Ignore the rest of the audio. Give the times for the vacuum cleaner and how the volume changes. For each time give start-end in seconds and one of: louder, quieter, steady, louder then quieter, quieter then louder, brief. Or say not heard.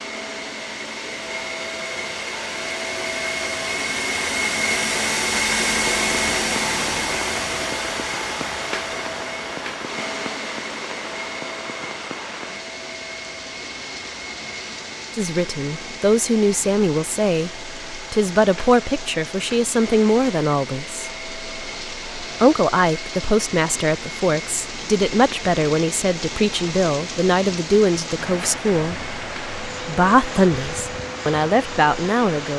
0.0-32.5 quieter.